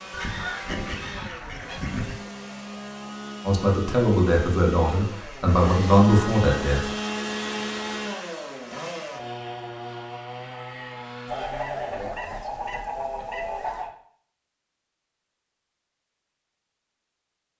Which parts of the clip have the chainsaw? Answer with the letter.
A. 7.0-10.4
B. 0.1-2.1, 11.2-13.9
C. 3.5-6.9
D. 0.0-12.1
D.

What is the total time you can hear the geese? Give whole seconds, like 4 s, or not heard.
5 s.